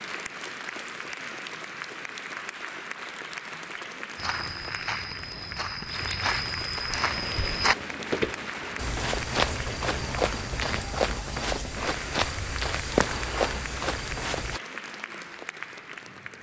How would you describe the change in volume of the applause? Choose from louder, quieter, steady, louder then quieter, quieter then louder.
steady.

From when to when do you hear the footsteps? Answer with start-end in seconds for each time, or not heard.
4.2-14.6.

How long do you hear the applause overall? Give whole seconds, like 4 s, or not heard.
16 s.